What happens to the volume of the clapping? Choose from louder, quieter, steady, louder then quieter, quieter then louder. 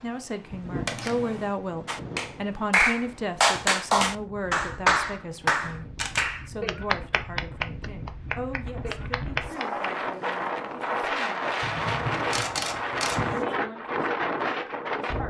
quieter.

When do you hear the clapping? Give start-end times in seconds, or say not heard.
1.9-9.9.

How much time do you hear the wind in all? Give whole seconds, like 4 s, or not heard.
15 s.